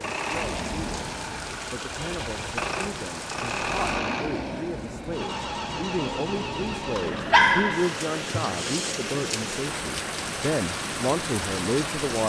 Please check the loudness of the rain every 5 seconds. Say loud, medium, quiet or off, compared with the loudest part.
medium, loud, loud.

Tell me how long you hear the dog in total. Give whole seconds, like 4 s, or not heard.
2 s.